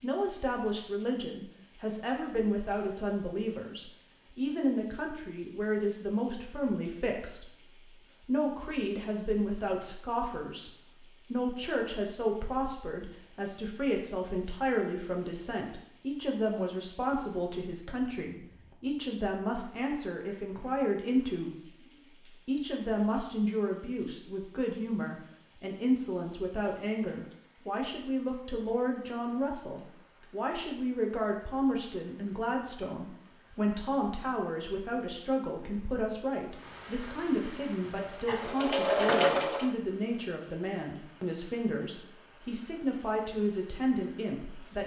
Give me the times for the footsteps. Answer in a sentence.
The footsteps can't be heard in this clip.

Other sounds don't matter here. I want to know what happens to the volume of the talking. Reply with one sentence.
The loudness of the talking stays about the same.